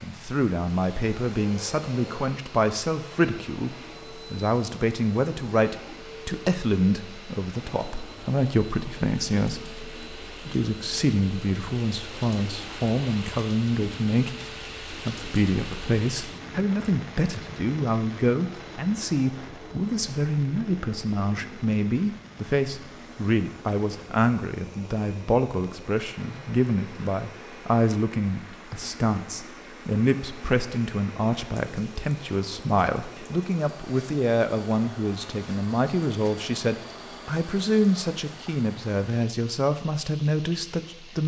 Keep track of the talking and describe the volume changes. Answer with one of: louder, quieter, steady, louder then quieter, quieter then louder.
steady.